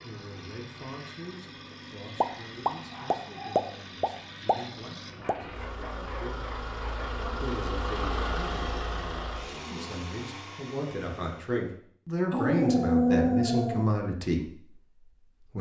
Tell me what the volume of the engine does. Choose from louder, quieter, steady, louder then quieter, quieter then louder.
louder then quieter.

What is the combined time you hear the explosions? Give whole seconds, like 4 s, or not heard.
3 s.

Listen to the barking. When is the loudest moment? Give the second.
13 s.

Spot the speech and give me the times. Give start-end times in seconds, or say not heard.
0.0-14.5.